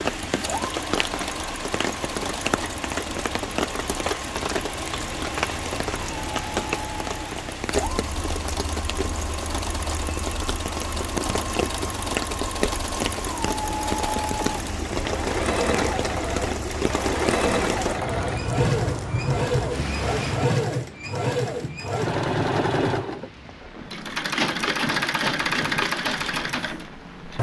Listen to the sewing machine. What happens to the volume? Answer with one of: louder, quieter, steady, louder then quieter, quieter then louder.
louder.